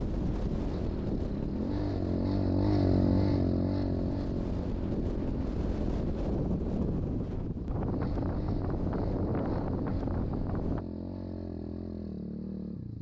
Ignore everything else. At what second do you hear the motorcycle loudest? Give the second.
3 s.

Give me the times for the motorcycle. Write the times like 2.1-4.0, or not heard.
0.0-12.9.